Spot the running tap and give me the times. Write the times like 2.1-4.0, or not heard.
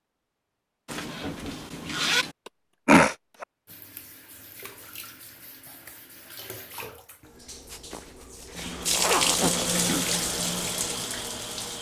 3.6-11.7.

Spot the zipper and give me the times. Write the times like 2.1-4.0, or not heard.
0.8-2.4, 7.7-9.7.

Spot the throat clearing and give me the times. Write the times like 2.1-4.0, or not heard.
2.9-3.5, 9.2-10.1.